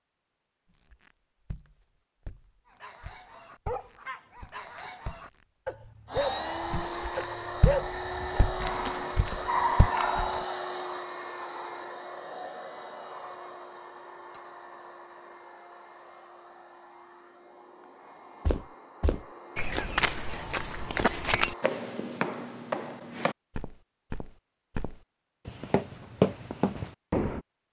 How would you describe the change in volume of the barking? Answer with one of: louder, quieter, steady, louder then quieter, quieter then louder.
louder.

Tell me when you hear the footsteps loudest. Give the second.
26 s.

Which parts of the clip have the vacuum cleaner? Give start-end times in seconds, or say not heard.
6.0-21.8.